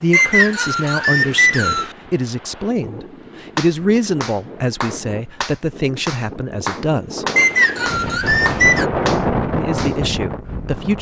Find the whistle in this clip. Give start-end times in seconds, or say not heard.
0.1-1.9, 7.3-8.8.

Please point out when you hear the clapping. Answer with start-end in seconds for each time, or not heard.
3.5-9.9.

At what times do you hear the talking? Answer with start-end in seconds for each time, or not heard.
0.0-7.2, 9.6-10.9.